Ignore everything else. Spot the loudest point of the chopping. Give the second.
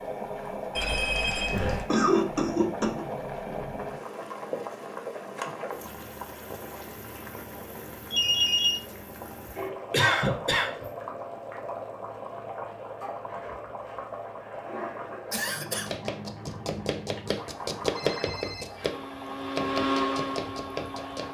18 s.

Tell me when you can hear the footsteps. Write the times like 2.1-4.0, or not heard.
not heard.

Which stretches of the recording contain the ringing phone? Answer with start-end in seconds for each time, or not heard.
0.8-1.9, 8.1-8.8, 17.9-18.9.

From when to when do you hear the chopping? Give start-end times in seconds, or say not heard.
15.7-21.2.